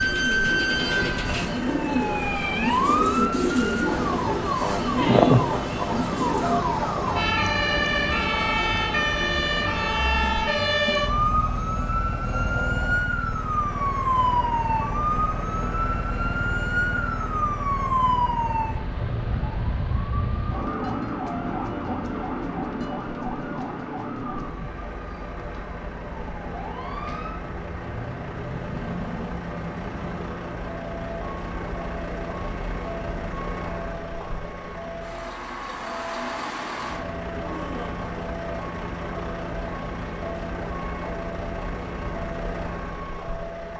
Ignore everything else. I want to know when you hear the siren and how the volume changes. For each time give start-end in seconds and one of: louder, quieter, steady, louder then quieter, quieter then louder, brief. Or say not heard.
0.0-43.7 quieter.